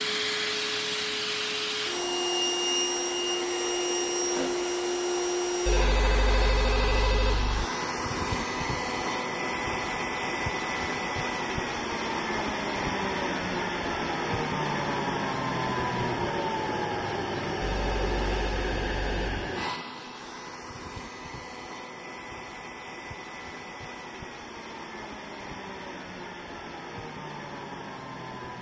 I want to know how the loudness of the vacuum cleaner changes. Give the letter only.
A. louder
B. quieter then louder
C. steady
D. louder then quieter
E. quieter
E.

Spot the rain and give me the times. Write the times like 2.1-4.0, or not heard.
not heard.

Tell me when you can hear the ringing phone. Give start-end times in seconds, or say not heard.
5.7-7.7, 17.6-19.4.